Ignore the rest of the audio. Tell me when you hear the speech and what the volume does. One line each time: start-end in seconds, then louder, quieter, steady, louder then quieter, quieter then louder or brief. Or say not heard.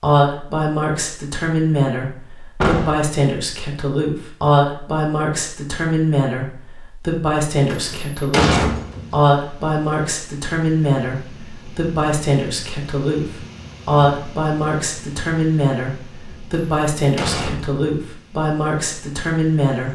0.0-19.9 steady.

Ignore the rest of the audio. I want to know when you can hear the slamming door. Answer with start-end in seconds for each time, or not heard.
2.6-3.0, 7.7-9.2, 16.5-17.8.